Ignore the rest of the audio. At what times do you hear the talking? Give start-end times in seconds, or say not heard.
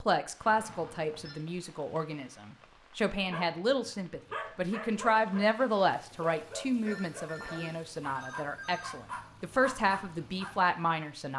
0.0-11.3.